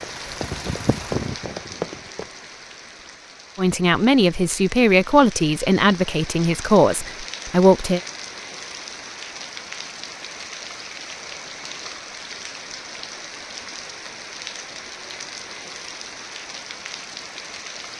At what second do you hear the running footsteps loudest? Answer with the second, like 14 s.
2 s.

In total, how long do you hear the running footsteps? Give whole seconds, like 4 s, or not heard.
2 s.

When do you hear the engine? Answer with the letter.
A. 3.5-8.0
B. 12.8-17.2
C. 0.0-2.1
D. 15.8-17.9
C.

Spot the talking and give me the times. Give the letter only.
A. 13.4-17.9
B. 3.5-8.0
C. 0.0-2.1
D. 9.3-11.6
B.